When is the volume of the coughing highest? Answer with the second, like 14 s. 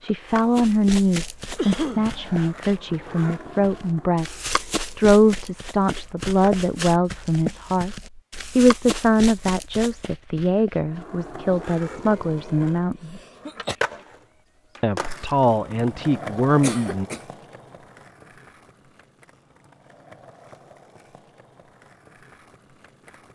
2 s.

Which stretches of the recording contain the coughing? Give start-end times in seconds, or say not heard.
1.6-2.1, 13.2-13.8, 16.6-17.2.